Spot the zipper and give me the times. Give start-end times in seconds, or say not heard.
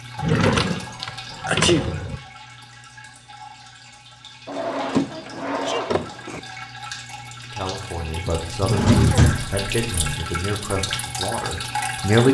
not heard.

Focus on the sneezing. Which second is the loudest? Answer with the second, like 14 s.
2 s.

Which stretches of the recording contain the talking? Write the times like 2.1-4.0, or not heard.
7.5-12.3.